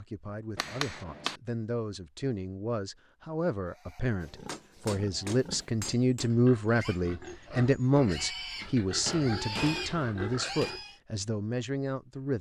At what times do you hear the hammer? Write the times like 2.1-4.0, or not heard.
0.6-1.4, 4.5-6.3, 8.6-10.8.